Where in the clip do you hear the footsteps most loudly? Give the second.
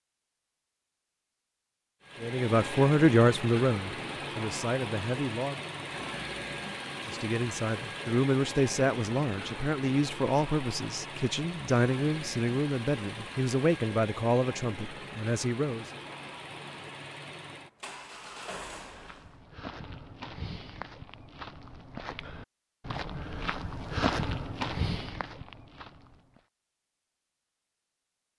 24 s.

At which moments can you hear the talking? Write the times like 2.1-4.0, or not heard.
2.2-5.5, 6.9-15.8.